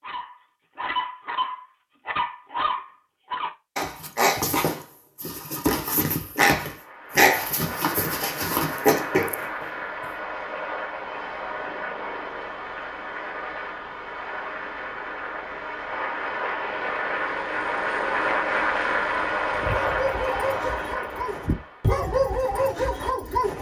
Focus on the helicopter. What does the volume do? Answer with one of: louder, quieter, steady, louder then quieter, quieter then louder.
louder.